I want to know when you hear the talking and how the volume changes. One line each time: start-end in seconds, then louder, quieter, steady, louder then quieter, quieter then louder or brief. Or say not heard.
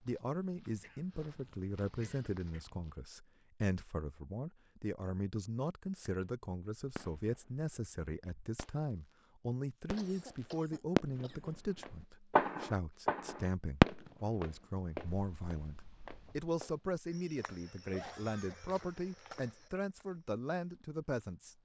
0.0-21.6 steady.